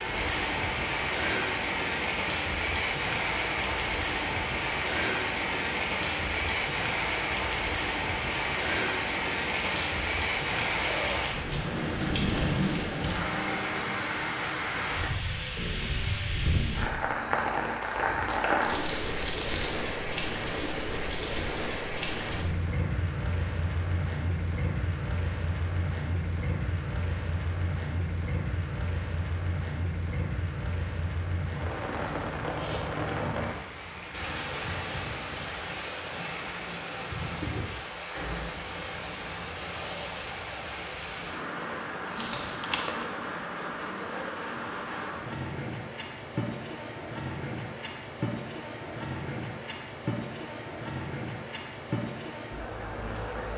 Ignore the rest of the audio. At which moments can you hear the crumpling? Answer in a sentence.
You can hear the crumpling from 8.3 to 10.7 s, from 18.2 to 19.8 s and from 42.1 to 43.0 s.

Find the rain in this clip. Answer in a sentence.
You can hear the rain from 0.0 to 53.5 s.